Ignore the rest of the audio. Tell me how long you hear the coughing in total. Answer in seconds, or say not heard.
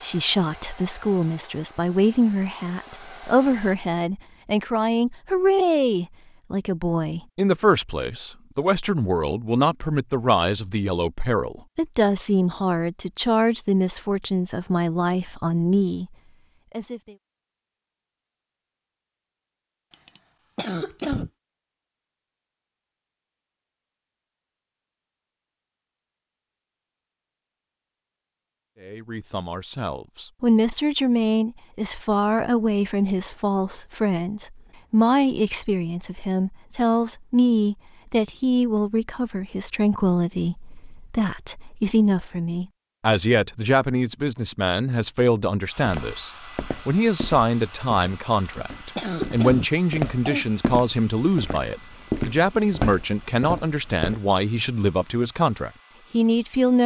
4 s.